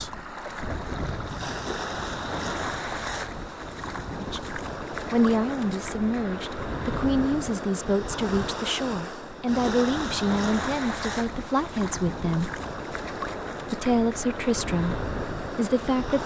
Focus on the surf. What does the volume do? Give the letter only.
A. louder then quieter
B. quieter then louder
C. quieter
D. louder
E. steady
E.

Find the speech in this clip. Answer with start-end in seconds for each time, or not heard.
4.2-12.5, 13.7-16.2.